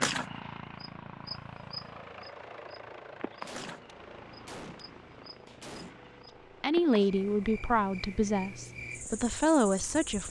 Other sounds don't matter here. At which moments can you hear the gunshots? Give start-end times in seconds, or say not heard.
3.5-6.1.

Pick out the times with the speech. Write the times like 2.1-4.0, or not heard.
6.6-10.2.